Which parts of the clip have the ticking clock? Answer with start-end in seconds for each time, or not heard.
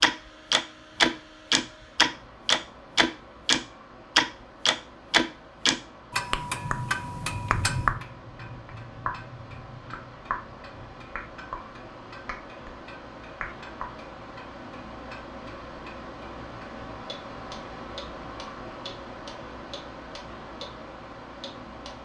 0.0-20.6, 21.4-21.9.